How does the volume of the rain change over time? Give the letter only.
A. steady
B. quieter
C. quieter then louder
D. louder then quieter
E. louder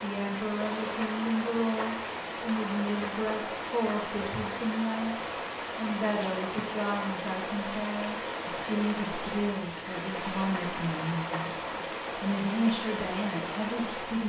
A.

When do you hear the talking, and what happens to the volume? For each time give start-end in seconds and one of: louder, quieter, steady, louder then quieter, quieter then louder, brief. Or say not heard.
0.0-14.2 steady.